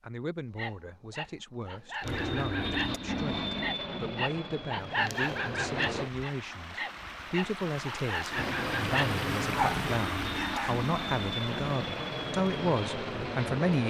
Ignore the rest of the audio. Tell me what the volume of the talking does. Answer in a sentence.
The volume of the talking goes up.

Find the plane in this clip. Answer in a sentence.
The plane can be heard from 2.0 to 6.1 s and from 8.3 to 13.8 s.